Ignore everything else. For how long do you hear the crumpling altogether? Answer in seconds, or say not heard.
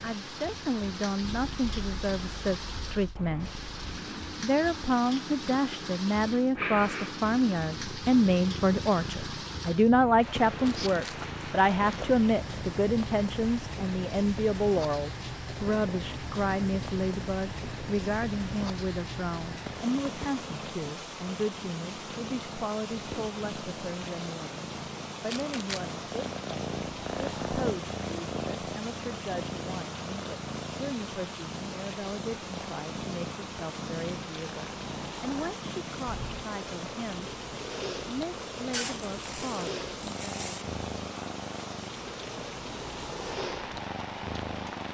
3 s.